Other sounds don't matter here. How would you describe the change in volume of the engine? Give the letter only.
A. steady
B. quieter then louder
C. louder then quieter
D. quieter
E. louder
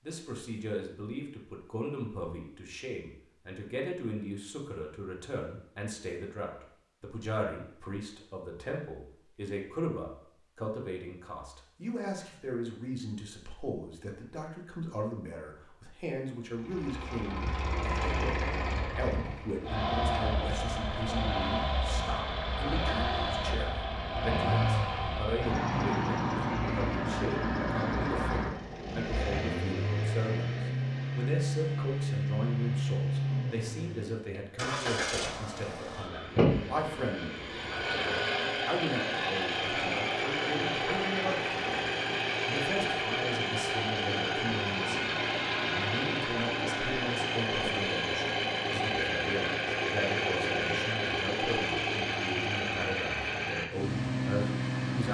A.